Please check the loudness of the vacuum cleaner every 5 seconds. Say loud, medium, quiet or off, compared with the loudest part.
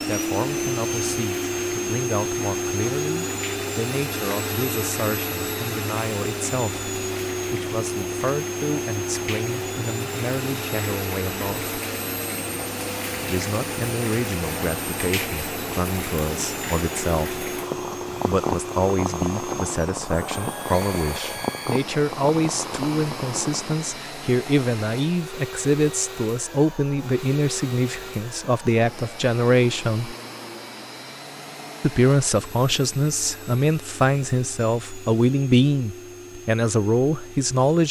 loud, loud, medium, medium, medium, medium, quiet, quiet.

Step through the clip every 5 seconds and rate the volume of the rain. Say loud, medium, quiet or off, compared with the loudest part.
medium, medium, loud, loud, loud, off, off, off.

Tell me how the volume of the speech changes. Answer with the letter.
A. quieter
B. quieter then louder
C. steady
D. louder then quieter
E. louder
E.